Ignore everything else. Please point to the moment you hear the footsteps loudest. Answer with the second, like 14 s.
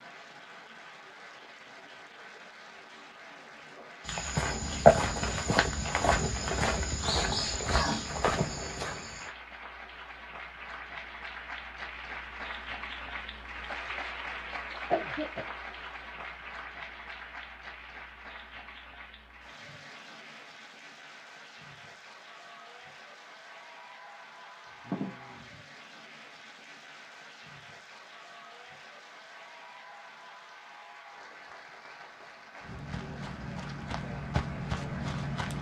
5 s.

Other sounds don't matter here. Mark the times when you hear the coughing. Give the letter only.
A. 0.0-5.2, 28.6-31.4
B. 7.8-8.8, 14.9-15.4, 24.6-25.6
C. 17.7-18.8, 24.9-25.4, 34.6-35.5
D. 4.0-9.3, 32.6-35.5
B.